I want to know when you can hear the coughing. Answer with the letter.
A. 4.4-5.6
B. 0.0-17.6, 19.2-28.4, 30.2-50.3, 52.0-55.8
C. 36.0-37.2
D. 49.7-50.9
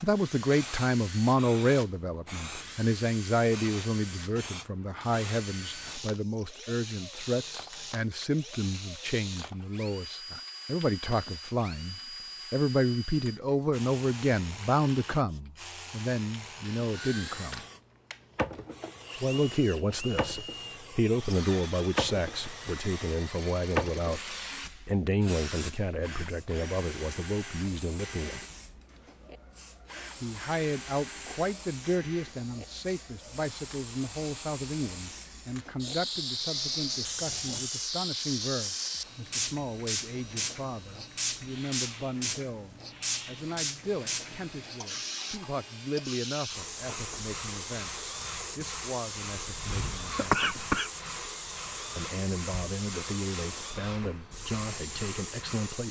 D.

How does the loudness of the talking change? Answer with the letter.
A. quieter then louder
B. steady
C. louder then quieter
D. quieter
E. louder
D.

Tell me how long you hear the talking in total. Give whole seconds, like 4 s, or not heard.
51 s.